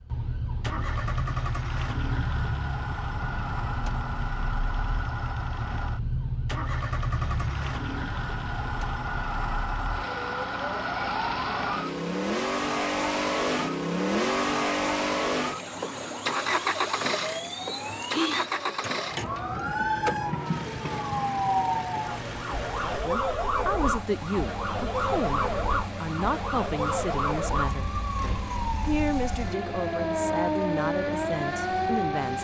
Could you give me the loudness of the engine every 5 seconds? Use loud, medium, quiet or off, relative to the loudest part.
medium, medium, loud, loud, medium, medium, medium.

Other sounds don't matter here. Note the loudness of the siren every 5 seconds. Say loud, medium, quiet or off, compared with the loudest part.
medium, medium, medium, medium, loud, loud, loud.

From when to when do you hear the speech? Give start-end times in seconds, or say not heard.
23.0-32.4.